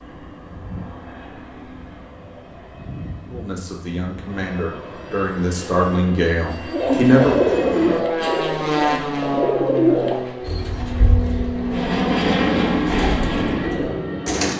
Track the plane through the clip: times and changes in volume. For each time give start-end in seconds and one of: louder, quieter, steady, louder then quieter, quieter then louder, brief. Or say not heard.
0.0-14.5 louder.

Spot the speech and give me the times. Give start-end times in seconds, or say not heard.
3.3-7.3.